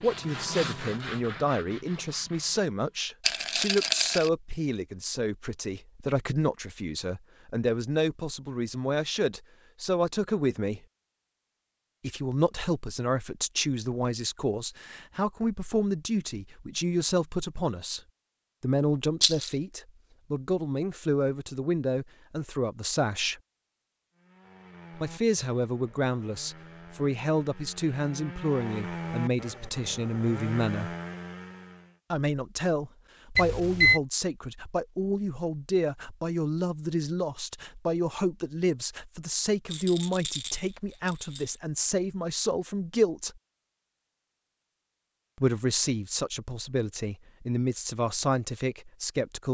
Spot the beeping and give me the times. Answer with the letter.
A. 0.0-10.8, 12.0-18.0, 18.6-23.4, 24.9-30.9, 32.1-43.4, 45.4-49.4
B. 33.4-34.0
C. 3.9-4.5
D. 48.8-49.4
B.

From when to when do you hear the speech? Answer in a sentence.
The speech can be heard from 0.0 to 10.8 s, from 12.0 to 18.0 s, from 18.6 to 23.4 s, from 24.9 to 30.9 s, from 32.1 to 43.4 s and from 45.4 to 49.4 s.